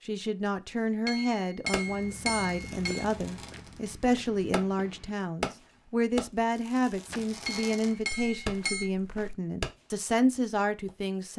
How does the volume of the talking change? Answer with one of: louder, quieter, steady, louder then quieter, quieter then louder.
steady.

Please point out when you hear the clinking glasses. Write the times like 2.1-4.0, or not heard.
1.1-3.0, 7.5-8.9.